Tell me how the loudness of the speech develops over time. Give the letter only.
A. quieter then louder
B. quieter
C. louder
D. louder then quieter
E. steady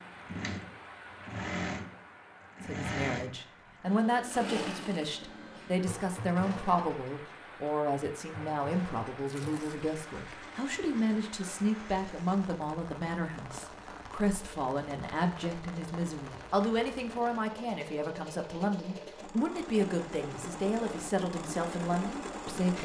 E.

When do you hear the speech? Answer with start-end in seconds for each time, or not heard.
2.6-22.8.